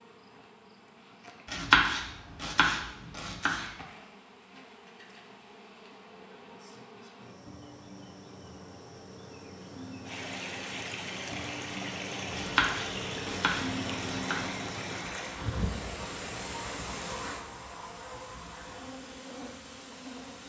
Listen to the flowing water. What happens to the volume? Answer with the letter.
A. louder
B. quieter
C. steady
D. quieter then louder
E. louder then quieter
B.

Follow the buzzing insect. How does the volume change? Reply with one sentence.
The loudness of the buzzing insect goes up, then down.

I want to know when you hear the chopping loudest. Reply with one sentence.
The volume of the chopping peaks at 2 seconds.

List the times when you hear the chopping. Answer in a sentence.
You can hear the chopping from 1.4 to 3.7 s and from 12.3 to 14.6 s.